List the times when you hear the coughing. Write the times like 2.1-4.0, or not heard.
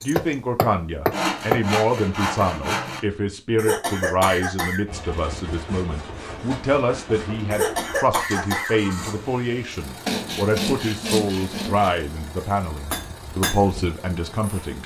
3.5-4.8, 7.5-8.8.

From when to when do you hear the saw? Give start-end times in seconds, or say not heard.
1.1-3.0, 5.0-7.4, 10.1-11.9.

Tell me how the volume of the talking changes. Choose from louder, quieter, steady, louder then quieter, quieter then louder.
steady.